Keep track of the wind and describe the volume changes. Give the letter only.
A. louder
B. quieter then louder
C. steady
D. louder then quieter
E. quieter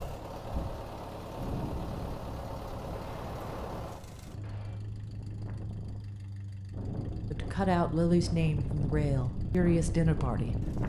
B.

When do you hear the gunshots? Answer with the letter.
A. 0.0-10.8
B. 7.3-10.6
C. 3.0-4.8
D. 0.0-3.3
C.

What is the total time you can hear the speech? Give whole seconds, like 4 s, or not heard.
3 s.